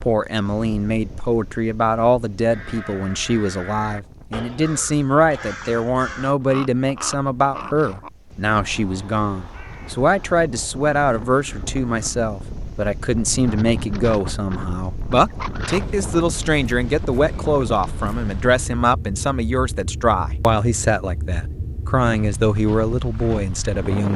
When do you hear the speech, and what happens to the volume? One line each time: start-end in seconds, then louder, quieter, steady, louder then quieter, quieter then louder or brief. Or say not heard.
0.0-24.1 steady.